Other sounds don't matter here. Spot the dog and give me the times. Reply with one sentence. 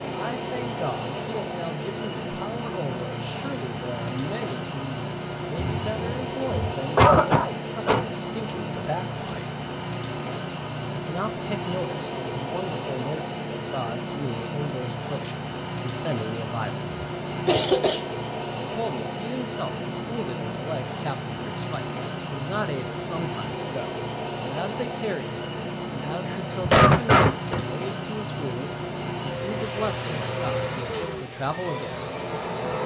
You can't hear the dog here.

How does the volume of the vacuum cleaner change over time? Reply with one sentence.
The volume of the vacuum cleaner stays about the same.